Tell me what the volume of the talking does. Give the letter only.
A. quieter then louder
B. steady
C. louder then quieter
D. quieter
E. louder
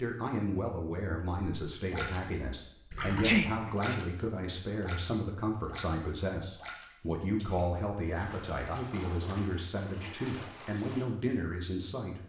B.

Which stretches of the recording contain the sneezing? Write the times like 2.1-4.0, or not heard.
3.0-4.0.